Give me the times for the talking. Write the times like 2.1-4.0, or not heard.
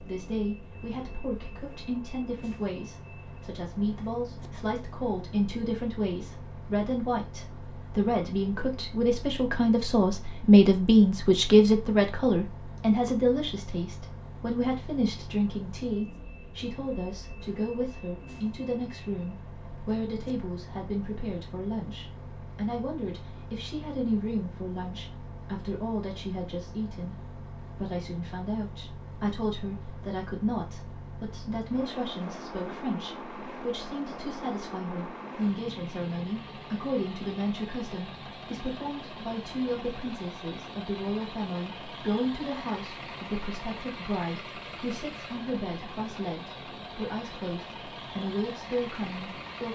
0.0-49.7.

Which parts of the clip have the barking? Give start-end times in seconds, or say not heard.
not heard.